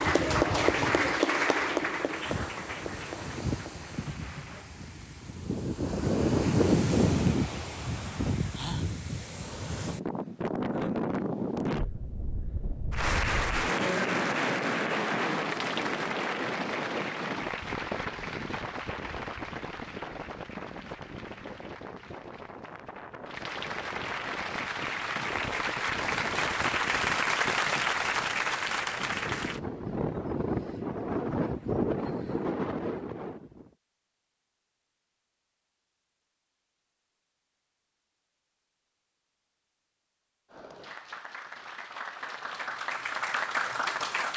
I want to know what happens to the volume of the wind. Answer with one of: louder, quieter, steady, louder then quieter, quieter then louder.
quieter then louder.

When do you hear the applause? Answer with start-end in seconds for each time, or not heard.
0.0-4.7, 12.9-29.6, 40.5-44.3.